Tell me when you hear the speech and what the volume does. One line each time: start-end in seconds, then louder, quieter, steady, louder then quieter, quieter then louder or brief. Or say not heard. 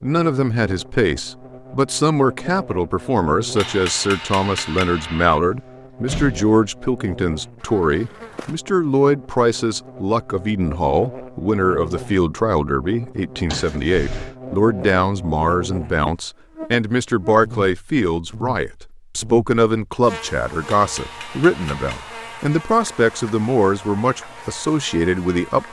0.0-25.6 steady.